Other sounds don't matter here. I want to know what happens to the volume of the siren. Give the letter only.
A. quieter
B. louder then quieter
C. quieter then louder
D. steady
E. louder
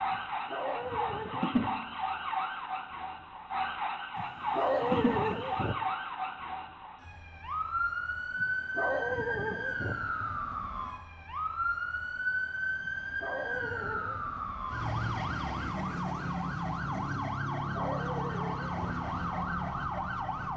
D.